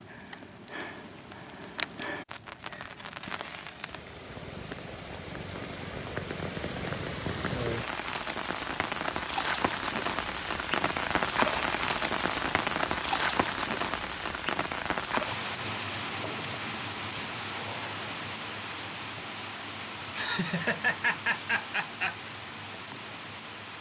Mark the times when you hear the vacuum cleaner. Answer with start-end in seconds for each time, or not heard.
not heard.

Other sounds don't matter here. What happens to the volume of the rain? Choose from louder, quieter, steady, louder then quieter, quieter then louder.
louder then quieter.